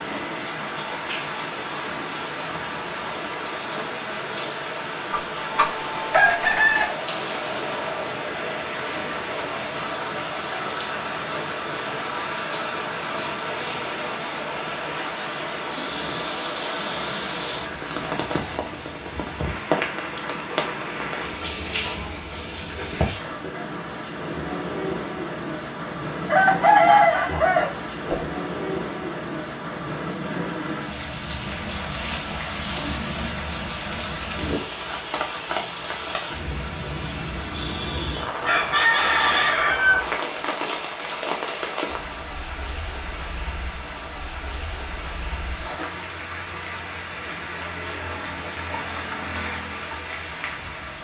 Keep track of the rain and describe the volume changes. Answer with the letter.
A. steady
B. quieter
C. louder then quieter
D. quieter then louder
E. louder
A.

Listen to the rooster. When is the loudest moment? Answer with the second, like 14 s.
27 s.